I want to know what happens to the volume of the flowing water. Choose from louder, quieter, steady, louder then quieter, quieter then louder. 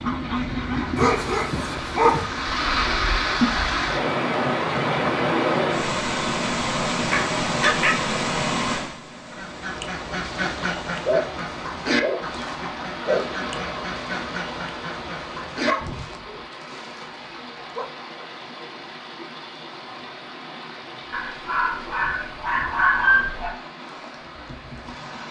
quieter.